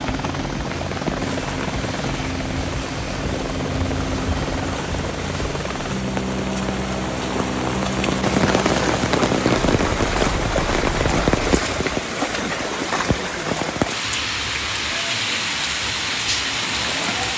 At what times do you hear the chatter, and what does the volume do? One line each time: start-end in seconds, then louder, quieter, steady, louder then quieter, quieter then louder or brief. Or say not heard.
not heard.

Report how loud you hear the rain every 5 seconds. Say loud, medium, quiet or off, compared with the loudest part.
medium, loud, loud, loud.